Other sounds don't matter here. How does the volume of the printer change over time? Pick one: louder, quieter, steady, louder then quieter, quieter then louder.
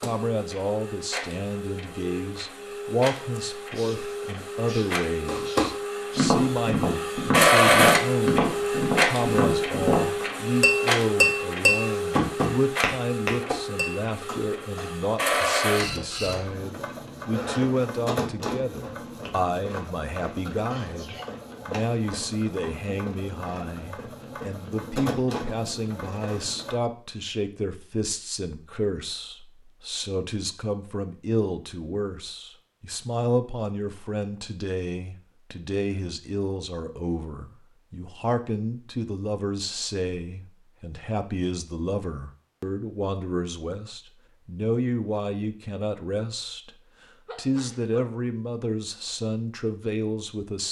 louder then quieter.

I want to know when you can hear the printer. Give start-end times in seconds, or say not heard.
0.0-26.8.